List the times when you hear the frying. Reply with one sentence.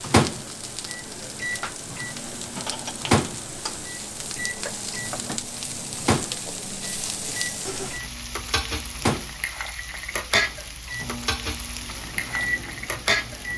You can hear the frying from 0.0 to 13.5 s.